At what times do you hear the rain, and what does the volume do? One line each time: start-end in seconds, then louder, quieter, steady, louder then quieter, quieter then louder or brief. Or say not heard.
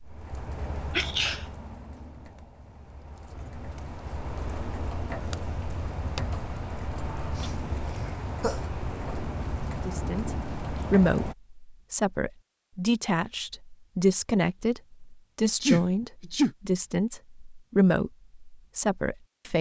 0.0-11.3 louder.